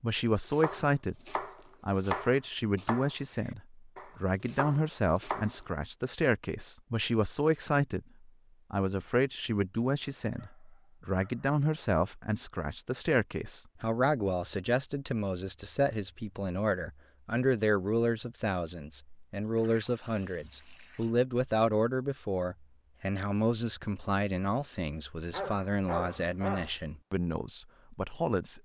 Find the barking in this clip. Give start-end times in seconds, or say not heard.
10.2-11.6, 25.3-26.8.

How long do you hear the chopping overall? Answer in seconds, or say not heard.
5 s.